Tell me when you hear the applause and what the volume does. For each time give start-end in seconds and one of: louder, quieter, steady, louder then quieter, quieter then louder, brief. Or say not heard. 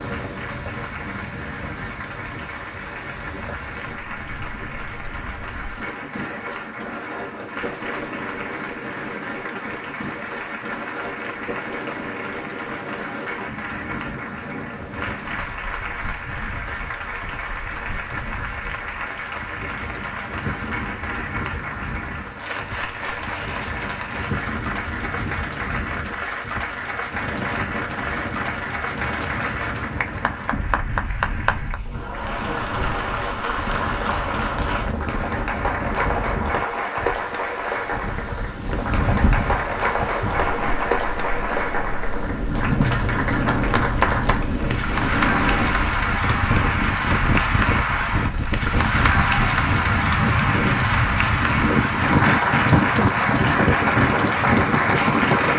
0.0-55.5 louder.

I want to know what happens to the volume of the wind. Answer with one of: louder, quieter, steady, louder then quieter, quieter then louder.
louder.